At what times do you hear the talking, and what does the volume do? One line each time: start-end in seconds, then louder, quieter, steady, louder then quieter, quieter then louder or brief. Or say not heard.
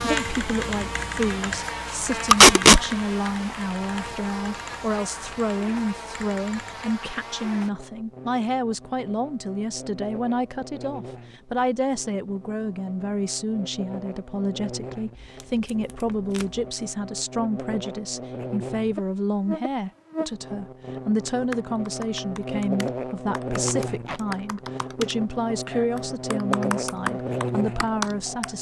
0.0-28.5 steady.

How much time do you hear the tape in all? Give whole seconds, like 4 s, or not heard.
2 s.